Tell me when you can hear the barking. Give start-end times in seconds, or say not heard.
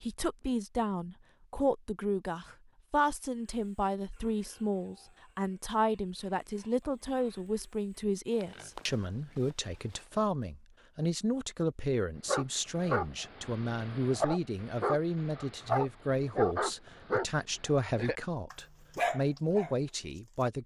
12.2-20.5.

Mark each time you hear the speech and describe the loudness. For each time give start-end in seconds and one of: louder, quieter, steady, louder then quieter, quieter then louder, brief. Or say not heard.
0.0-20.6 steady.